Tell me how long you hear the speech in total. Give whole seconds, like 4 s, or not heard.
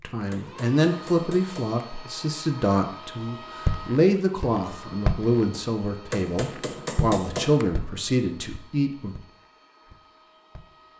9 s.